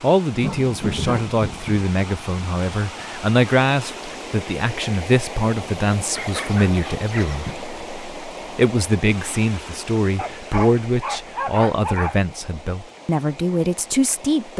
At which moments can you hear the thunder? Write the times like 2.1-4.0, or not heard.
0.3-1.9.